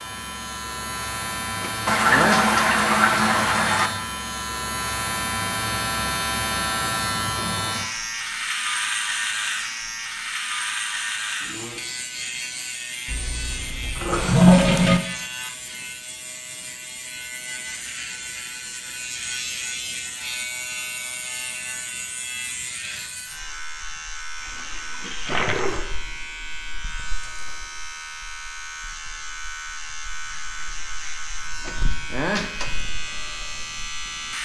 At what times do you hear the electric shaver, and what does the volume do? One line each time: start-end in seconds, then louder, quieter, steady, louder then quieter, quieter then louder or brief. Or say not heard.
0.0-34.3 quieter.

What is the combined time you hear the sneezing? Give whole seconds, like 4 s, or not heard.
2 s.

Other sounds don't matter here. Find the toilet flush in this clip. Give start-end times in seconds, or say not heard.
1.9-3.9, 13.1-15.0, 24.4-25.9.